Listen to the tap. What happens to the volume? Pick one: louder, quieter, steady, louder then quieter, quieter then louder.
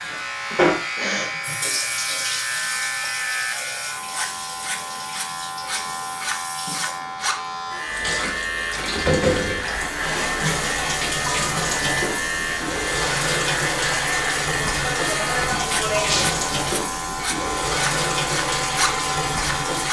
quieter then louder.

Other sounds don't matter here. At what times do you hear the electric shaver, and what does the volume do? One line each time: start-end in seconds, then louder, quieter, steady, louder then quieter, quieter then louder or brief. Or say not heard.
0.0-19.8 steady.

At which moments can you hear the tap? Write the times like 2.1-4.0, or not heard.
0.0-19.8.